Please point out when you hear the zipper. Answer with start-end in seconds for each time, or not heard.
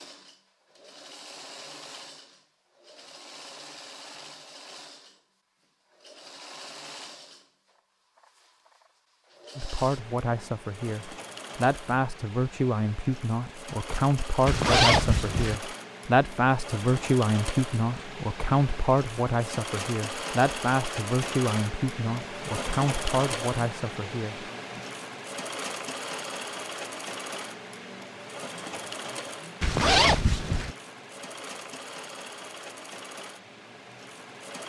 14.4-15.6, 29.6-30.8.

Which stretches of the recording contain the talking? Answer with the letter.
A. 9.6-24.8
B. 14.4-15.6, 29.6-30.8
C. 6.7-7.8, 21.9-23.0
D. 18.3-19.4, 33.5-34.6
A.